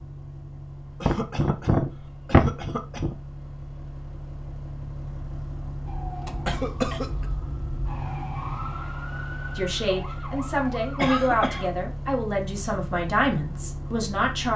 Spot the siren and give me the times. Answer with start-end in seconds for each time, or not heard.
5.8-11.2.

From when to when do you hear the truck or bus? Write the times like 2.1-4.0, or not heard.
0.0-14.5.